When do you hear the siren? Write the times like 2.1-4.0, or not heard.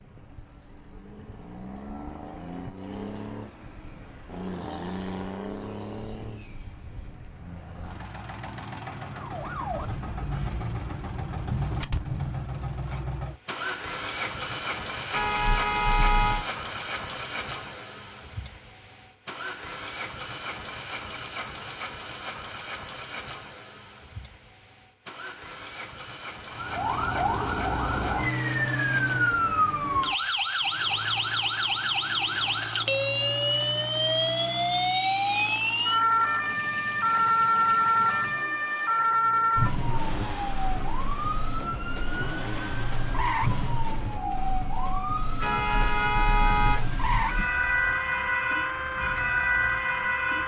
9.2-12.6, 26.5-50.4.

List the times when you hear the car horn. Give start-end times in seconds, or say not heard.
15.1-16.4, 45.4-47.5.